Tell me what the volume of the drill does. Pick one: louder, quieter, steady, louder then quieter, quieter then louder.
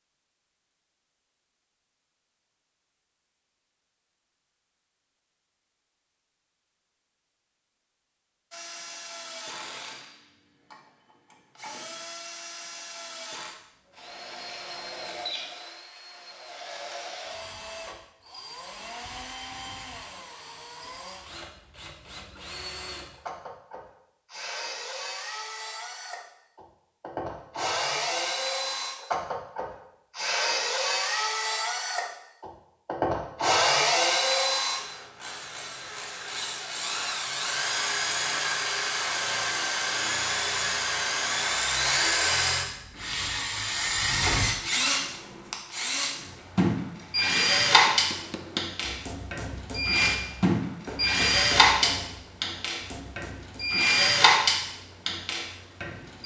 louder.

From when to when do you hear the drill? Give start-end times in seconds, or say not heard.
8.5-56.2.